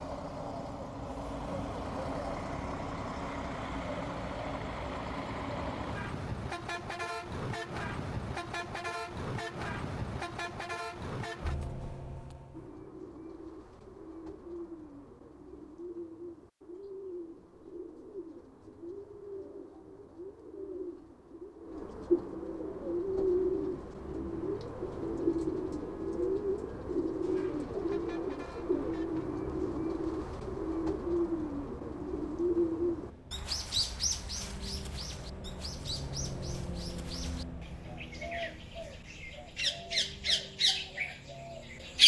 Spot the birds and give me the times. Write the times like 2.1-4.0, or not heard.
12.5-42.0.